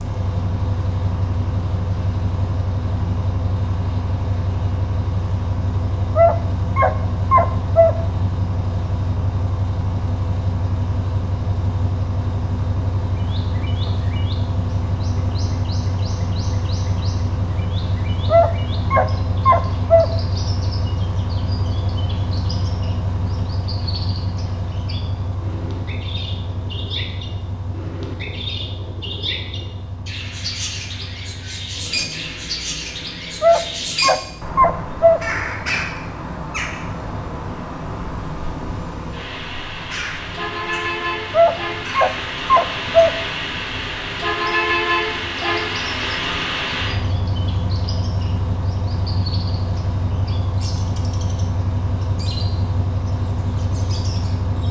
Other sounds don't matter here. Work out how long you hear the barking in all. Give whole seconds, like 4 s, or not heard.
7 s.